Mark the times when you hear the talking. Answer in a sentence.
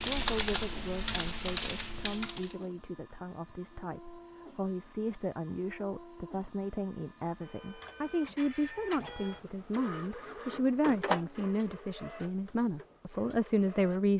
The talking can be heard from 0.0 to 14.1 s.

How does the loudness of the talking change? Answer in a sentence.
The volume of the talking goes up.